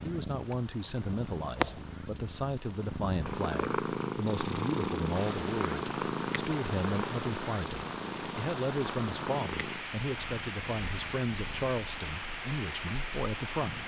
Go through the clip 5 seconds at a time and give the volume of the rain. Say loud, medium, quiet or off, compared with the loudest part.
quiet, loud, loud.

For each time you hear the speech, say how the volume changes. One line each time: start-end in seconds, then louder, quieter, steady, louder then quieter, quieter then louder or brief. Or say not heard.
0.0-13.8 steady.